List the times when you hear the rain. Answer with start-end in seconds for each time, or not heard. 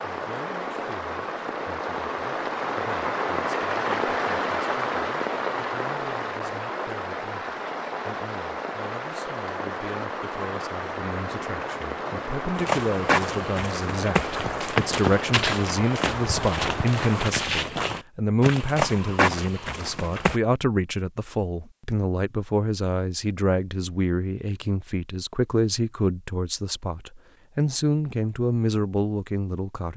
0.0-17.3.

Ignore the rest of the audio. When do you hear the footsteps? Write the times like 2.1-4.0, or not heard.
12.6-20.4.